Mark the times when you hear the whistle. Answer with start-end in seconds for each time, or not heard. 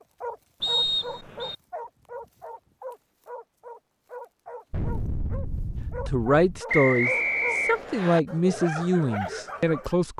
0.6-1.6, 6.7-8.2.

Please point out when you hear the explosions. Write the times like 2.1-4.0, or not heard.
4.7-6.6.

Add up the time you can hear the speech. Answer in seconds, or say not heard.
4 s.